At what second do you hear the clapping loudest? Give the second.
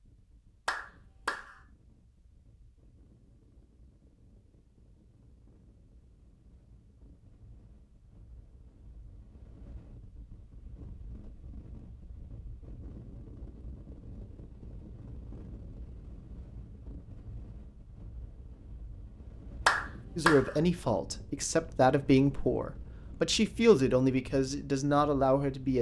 20 s.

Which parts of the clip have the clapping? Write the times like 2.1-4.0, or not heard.
0.7-1.6, 19.6-20.6.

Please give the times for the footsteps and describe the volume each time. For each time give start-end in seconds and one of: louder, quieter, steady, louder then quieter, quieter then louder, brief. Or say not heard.
not heard.